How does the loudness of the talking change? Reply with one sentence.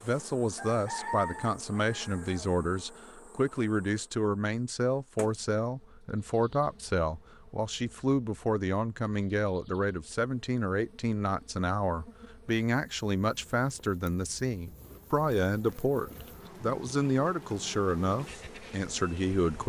The volume of the talking stays about the same.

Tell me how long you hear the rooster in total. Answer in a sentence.
You can hear the rooster for 2 seconds altogether.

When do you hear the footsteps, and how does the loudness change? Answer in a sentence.
The footsteps can't be heard in this clip.